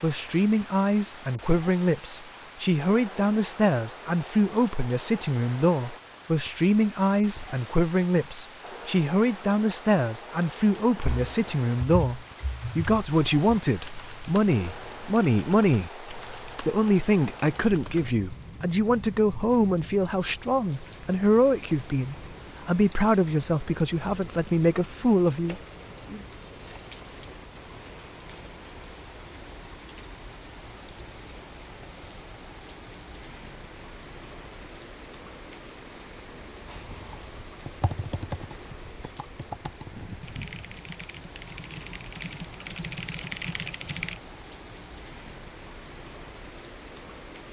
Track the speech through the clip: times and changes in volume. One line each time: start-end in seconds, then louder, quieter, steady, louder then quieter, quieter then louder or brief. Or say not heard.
0.0-26.2 steady.